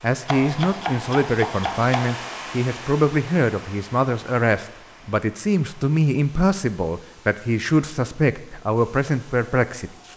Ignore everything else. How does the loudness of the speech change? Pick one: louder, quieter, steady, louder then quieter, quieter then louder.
steady.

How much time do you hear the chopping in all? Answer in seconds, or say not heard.
2 s.